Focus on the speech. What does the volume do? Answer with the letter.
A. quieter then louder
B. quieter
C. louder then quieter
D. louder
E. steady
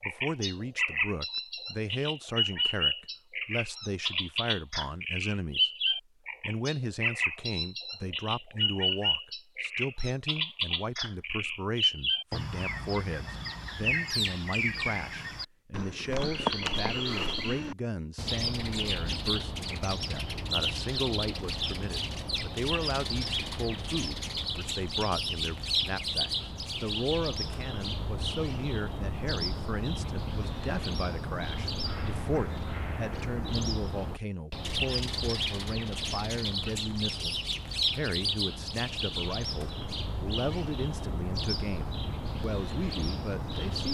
E.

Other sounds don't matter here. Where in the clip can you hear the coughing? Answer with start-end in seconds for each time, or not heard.
not heard.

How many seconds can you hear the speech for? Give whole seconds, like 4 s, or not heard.
44 s.